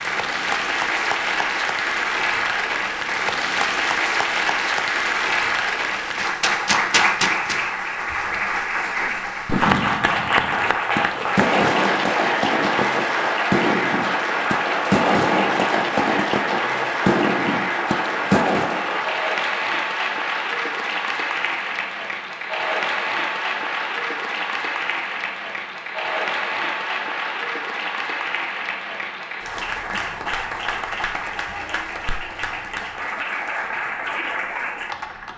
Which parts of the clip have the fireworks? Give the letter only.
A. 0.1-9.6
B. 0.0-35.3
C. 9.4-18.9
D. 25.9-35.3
C.